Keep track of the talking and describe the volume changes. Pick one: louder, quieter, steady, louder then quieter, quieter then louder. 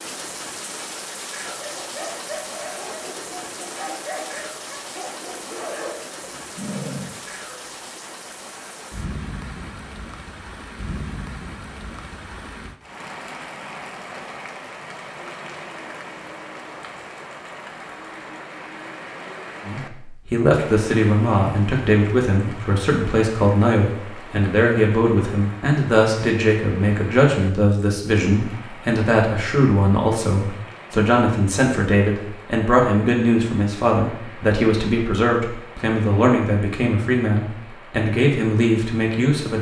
steady.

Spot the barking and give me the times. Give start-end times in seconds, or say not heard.
1.4-7.4.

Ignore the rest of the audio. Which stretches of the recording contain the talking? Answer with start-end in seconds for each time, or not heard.
19.6-39.5.